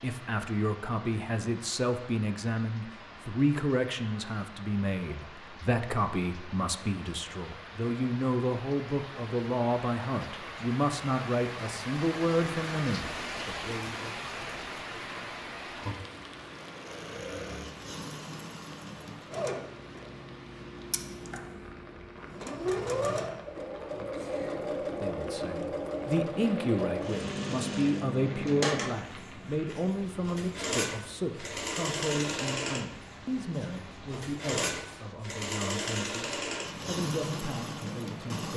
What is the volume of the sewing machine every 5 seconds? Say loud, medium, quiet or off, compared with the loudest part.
off, off, off, medium, loud, loud, loud, loud.